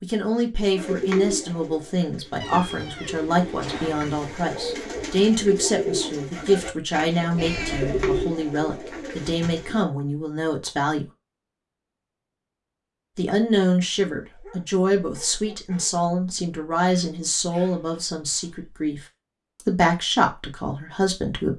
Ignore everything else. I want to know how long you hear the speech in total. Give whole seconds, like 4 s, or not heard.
19 s.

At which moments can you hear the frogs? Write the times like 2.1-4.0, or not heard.
not heard.